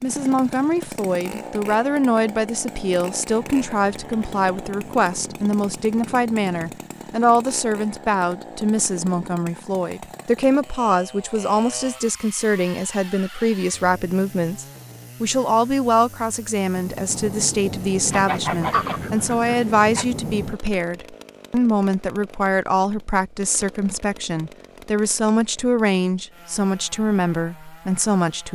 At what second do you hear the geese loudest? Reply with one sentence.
The loudest moment of the geese is at 19 seconds.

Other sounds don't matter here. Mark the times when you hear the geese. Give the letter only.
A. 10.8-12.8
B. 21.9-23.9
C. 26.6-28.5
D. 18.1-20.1
D.